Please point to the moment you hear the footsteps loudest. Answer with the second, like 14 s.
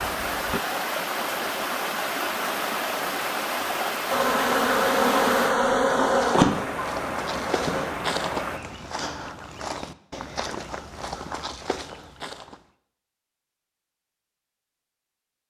8 s.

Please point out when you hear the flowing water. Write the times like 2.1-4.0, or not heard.
0.0-8.6.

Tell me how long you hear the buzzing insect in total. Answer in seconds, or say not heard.
4 s.